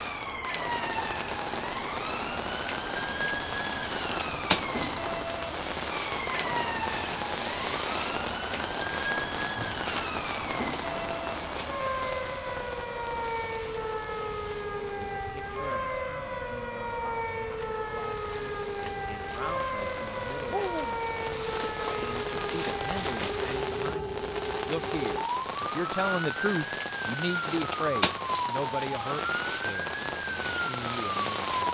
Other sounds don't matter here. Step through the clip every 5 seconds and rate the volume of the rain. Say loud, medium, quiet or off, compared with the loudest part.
loud, loud, medium, quiet, loud, loud, loud.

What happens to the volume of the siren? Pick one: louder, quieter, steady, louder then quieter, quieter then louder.
steady.